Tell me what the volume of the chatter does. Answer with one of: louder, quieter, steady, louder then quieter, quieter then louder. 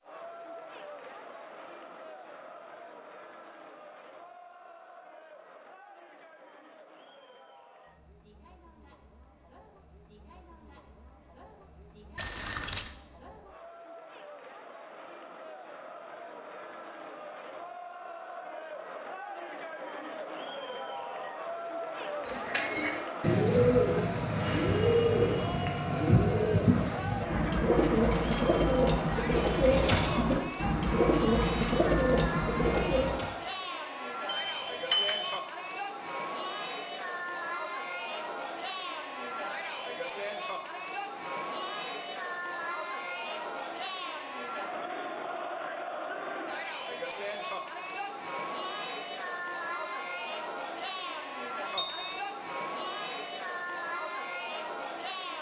louder.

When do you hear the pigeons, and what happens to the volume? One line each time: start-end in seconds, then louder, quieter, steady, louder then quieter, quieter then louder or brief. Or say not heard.
22.3-33.3 steady.